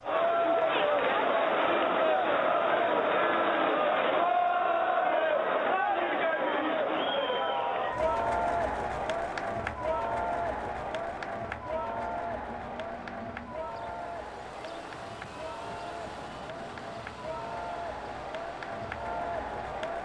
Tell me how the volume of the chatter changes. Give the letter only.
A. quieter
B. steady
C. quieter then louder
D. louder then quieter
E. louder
A.